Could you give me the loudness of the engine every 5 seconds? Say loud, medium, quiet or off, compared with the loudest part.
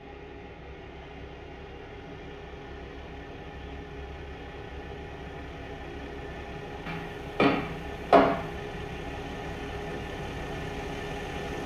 medium, loud, loud.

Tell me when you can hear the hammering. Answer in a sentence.
The hammering can be heard from 6.8 to 8.5 s.